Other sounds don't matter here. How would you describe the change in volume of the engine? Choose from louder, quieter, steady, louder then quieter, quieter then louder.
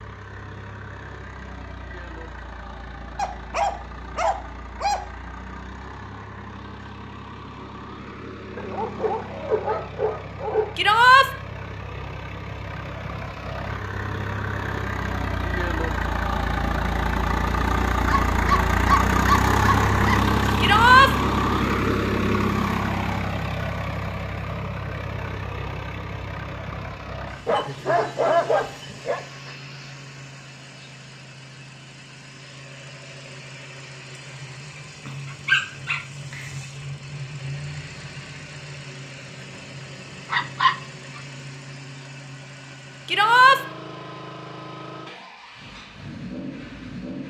louder then quieter.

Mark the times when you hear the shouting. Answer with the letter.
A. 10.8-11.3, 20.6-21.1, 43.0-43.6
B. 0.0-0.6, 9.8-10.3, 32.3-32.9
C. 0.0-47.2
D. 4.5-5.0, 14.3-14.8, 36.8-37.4
A.